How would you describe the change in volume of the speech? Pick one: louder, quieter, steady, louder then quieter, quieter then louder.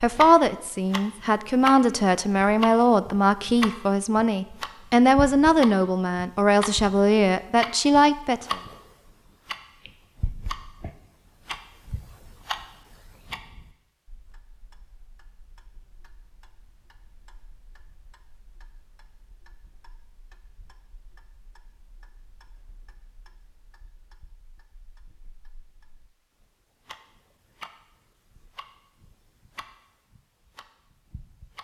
steady.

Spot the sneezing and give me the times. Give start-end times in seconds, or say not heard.
not heard.